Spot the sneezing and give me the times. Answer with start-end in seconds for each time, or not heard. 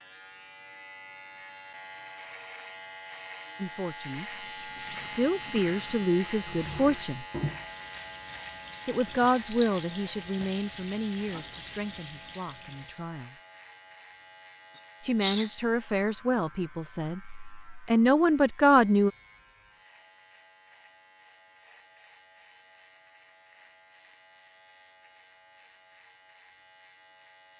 14.8-15.5.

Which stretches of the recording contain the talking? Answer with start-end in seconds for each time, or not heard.
3.5-7.2, 8.8-13.3, 15.0-19.1.